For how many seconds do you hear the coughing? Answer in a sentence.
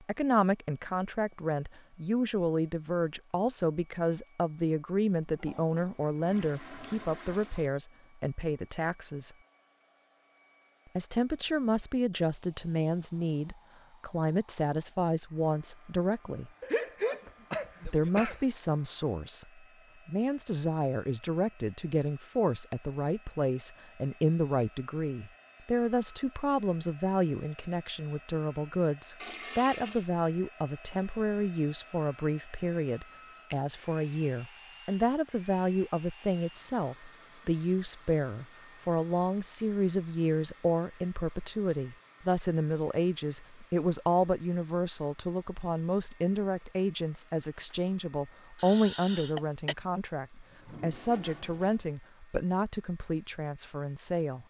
The coughing can be heard for 3 seconds in total.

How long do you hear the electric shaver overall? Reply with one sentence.
You can't hear the electric shaver here.